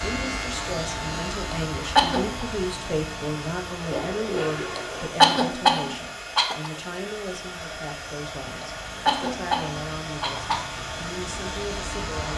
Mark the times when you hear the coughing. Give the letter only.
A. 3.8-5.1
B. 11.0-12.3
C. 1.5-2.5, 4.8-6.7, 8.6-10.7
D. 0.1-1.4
C.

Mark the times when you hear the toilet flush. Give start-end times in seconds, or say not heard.
3.8-5.1.